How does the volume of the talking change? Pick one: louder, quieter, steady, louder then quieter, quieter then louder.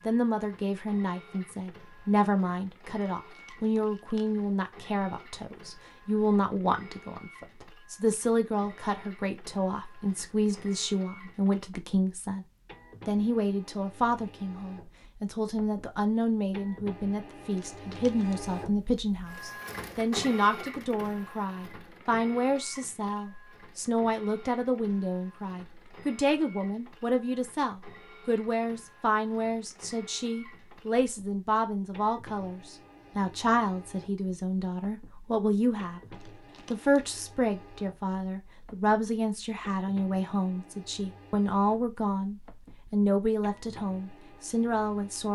steady.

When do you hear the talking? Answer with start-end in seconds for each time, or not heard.
0.1-12.4, 13.1-36.0, 36.7-45.3.